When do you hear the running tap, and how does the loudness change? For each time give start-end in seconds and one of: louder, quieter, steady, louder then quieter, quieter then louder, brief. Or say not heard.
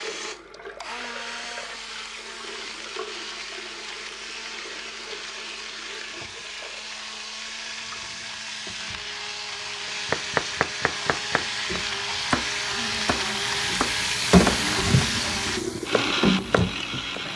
0.0-17.3 quieter then louder.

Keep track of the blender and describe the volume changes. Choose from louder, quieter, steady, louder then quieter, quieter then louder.
louder.